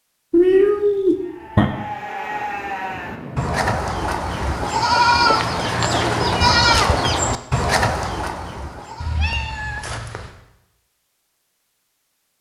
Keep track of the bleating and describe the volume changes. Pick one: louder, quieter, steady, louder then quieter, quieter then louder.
louder then quieter.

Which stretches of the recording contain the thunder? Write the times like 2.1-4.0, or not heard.
1.8-3.5.